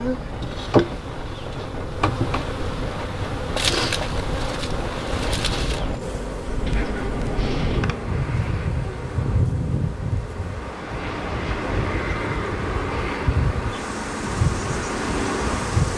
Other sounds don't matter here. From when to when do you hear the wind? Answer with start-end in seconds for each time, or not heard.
0.0-15.9.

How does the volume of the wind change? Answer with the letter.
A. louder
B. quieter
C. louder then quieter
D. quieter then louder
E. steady
A.